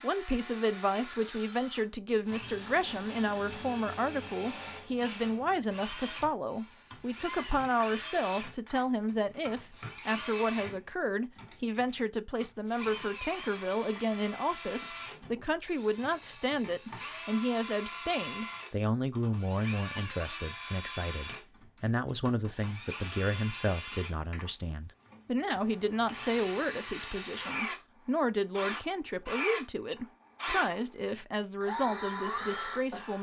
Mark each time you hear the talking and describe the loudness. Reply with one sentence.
The talking can be heard from 0.0 to 33.1 s, at a steady volume.